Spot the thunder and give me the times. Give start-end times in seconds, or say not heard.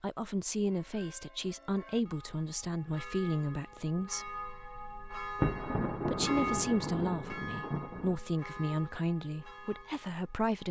5.3-8.2.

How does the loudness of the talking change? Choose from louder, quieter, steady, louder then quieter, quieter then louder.
steady.